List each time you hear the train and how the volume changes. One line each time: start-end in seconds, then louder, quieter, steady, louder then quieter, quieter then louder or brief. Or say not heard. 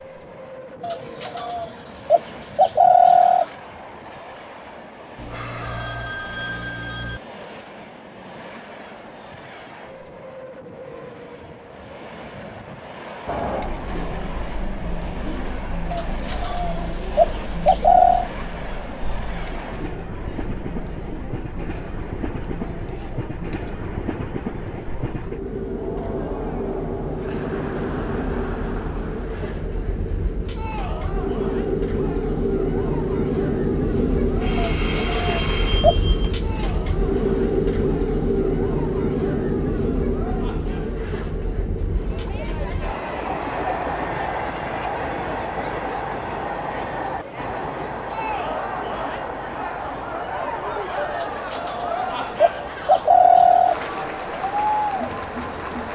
0.0-55.9 louder then quieter.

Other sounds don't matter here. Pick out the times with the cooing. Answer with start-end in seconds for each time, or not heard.
0.8-3.5, 15.9-18.3, 34.5-36.0, 51.1-54.0.